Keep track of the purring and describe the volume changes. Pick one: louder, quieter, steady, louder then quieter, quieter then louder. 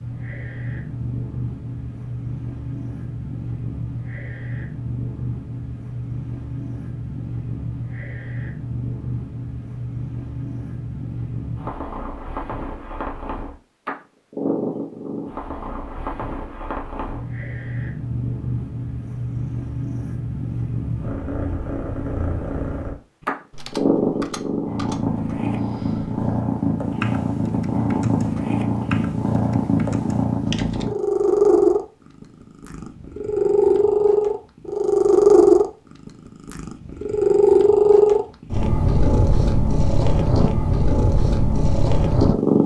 louder.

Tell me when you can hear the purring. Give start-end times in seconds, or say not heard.
0.0-42.6.